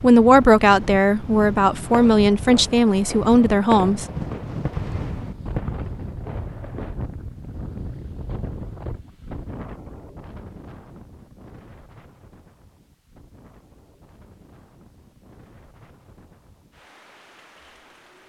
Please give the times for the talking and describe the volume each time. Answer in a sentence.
The talking can be heard from 0.0 to 4.0 s, at a steady volume.